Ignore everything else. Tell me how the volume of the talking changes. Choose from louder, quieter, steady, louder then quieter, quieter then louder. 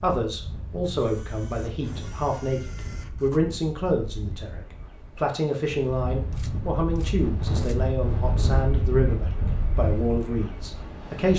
steady.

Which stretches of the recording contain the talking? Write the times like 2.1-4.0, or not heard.
0.0-11.3.